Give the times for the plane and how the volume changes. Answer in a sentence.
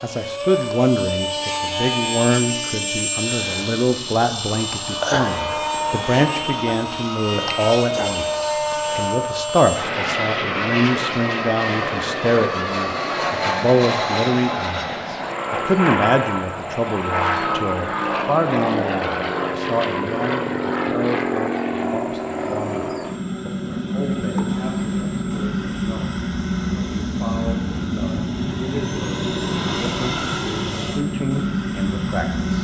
You can hear the plane from 0.0 to 32.5 s, at a steady volume.